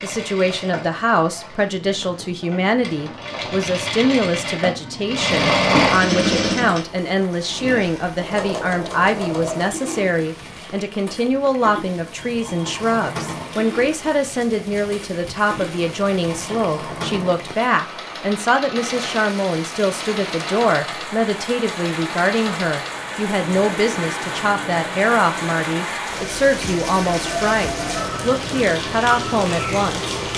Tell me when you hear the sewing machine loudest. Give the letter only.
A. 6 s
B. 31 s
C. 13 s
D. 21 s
A.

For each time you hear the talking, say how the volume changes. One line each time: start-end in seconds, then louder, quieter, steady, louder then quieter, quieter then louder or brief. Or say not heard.
0.0-30.1 steady.